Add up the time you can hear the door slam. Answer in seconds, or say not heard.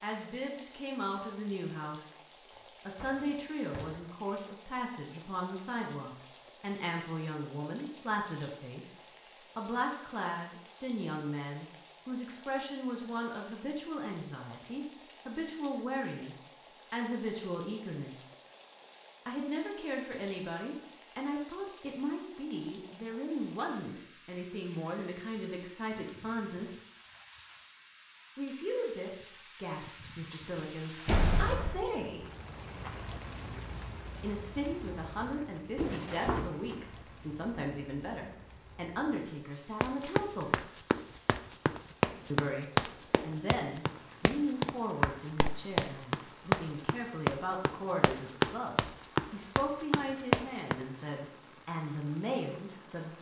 3 s.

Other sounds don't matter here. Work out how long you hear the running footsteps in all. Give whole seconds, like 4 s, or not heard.
11 s.